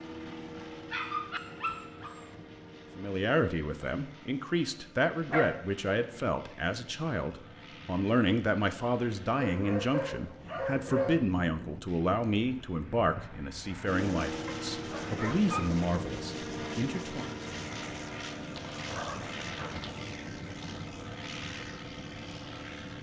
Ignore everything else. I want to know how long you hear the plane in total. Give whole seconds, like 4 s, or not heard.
23 s.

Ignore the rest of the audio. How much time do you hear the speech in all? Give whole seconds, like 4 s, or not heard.
14 s.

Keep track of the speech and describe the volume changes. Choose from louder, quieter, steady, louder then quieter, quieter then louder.
steady.